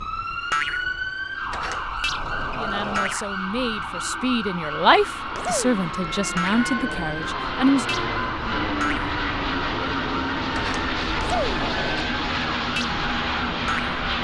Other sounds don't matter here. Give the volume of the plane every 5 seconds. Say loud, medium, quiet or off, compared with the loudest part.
quiet, loud, loud.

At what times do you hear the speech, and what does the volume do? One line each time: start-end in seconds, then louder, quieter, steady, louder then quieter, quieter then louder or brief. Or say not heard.
2.5-7.8 louder then quieter.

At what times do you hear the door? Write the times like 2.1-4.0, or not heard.
1.4-3.2, 10.5-12.1.